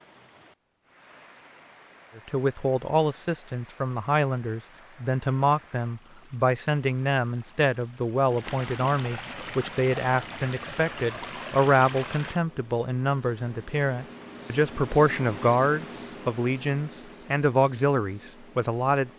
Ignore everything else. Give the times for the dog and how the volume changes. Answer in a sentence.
You can't hear the dog here.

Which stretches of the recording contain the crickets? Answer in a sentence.
You can hear the crickets from 9.3 to 19.1 s.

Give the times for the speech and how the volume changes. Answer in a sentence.
You can hear the speech from 2.1 to 19.1 s, at a steady volume.